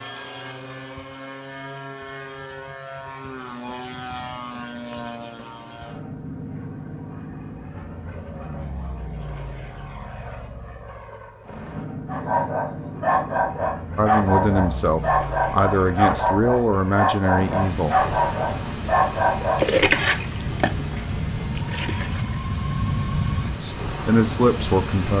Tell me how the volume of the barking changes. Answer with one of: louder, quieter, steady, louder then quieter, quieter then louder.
steady.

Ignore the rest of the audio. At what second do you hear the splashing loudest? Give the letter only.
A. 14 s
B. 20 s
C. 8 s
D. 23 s
B.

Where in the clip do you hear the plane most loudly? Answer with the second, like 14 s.
23 s.